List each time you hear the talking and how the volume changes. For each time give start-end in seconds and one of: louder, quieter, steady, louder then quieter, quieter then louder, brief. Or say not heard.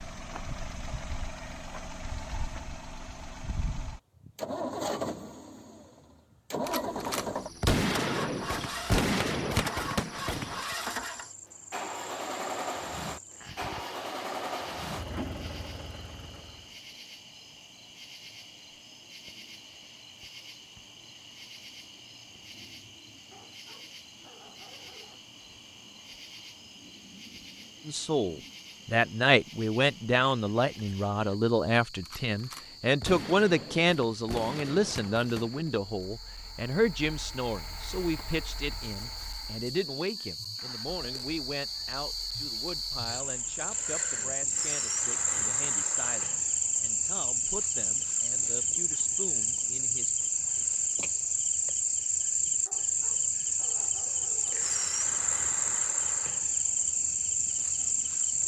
27.9-50.2 quieter.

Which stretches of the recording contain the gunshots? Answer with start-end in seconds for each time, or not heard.
6.7-10.8, 32.0-35.7.